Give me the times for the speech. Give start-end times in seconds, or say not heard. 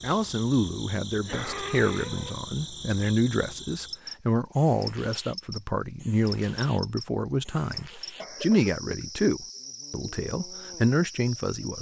0.0-11.7.